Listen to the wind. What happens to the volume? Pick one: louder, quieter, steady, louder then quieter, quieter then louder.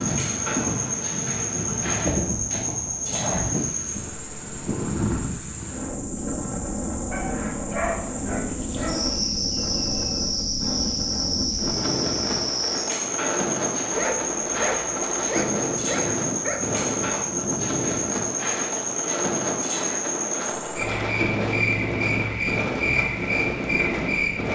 steady.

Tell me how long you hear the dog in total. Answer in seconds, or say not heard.
5 s.